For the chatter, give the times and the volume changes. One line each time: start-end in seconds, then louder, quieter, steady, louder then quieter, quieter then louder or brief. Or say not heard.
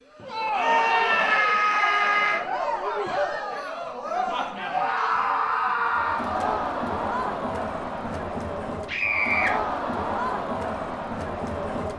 0.1-11.9 steady.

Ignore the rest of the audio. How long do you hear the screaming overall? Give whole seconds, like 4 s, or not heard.
4 s.